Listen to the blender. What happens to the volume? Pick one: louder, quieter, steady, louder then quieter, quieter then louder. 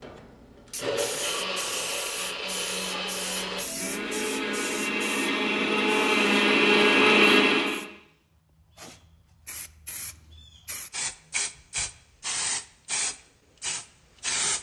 louder.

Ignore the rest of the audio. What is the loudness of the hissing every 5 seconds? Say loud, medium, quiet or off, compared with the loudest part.
medium, quiet, loud.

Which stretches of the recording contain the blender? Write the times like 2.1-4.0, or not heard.
0.0-7.8.